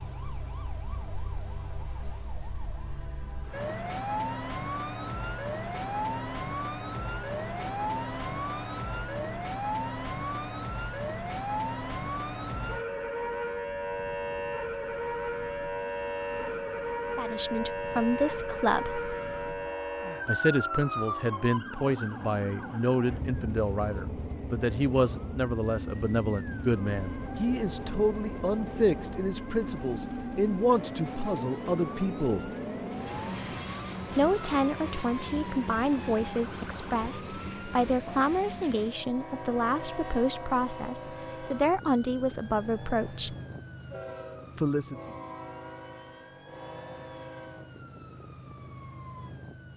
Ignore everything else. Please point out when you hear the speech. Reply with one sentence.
You can hear the speech from 17.1 to 19.0 s, from 20.2 to 32.5 s, from 34.1 to 43.4 s and from 44.5 to 45.1 s.